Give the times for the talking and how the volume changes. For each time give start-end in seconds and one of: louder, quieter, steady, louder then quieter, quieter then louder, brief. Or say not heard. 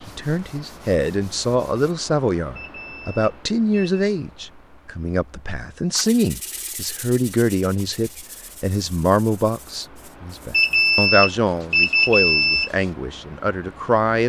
0.1-14.2 steady.